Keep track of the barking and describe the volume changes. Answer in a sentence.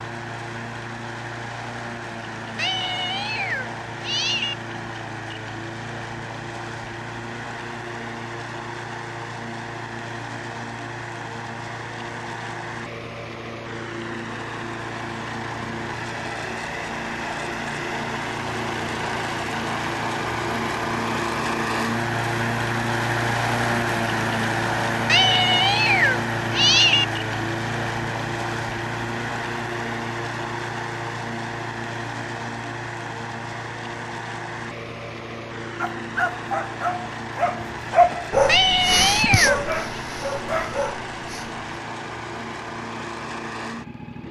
The loudness of the barking goes up, then down.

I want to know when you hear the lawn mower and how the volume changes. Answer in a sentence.
The lawn mower can be heard from 0.0 to 44.2 s, getting louder then quieter.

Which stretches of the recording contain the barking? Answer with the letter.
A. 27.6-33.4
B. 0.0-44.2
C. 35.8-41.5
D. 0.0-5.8
C.